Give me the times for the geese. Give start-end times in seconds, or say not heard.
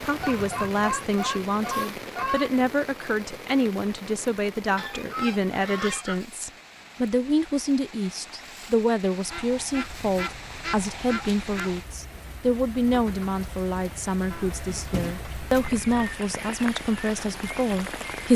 0.2-2.6, 4.8-6.2, 9.2-11.8, 14.3-16.1.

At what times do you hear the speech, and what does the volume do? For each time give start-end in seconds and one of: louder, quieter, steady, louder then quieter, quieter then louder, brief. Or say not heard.
0.0-18.3 steady.